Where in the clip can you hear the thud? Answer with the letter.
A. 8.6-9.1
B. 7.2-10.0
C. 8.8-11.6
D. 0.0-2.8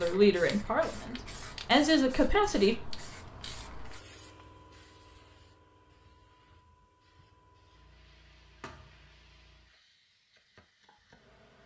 A.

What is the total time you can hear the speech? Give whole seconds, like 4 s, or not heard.
3 s.